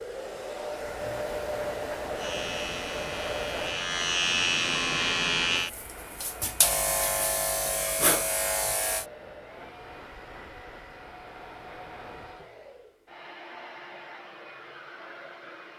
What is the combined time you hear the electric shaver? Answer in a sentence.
The electric shaver can be heard for 7 seconds in total.